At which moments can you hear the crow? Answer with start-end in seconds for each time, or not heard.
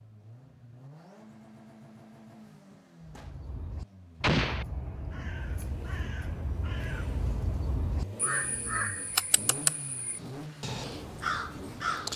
3.0-12.1.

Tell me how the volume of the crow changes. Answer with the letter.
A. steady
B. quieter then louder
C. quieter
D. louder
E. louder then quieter
D.